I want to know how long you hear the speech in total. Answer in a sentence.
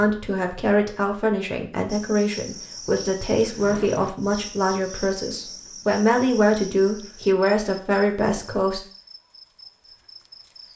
The speech can be heard for 9 seconds in total.